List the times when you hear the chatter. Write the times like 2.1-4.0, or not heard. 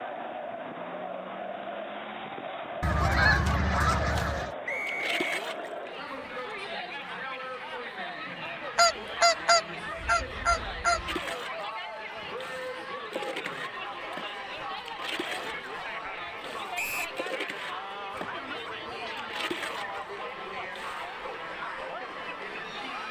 0.0-23.0.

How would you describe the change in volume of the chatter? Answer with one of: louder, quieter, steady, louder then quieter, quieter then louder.
steady.